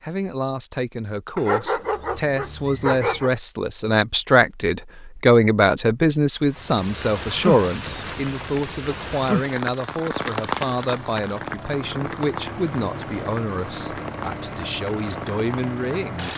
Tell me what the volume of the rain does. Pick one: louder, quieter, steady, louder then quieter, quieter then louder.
quieter.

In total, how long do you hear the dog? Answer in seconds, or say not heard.
2 s.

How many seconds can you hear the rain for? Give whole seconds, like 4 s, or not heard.
10 s.